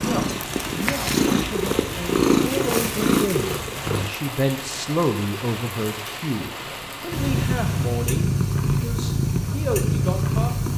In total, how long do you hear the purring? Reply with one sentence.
You can hear the purring for 8 seconds altogether.